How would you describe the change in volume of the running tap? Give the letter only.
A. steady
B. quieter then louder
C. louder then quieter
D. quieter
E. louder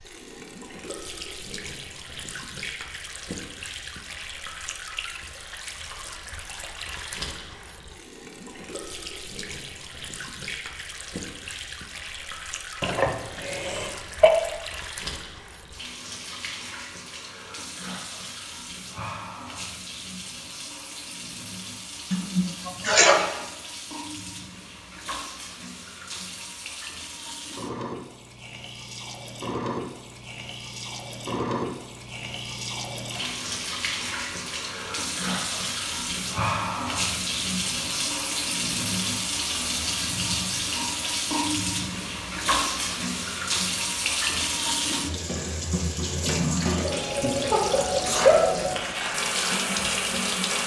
E.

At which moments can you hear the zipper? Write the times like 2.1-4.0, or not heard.
not heard.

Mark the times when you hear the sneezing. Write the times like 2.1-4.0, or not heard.
12.8-14.3, 22.1-23.3, 47.5-48.5.